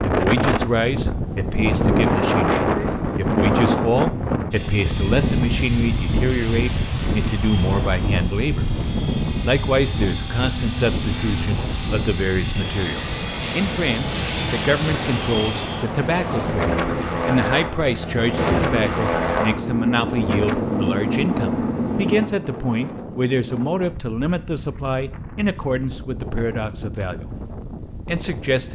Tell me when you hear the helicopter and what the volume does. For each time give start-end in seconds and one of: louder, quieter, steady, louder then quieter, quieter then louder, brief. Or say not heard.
4.5-22.3 louder.